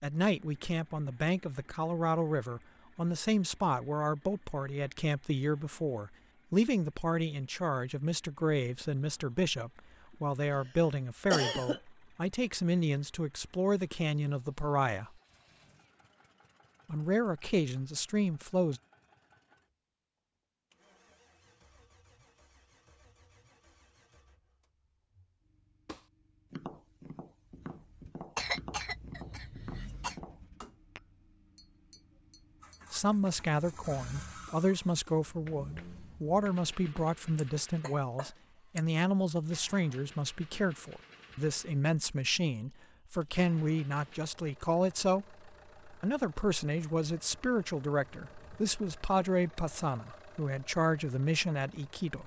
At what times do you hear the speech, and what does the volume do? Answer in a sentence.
You can hear the speech from 0.0 to 15.1 s, at a steady volume; briefly from 16.9 to 18.8 s; and from 32.9 to 52.2 s, at a steady volume.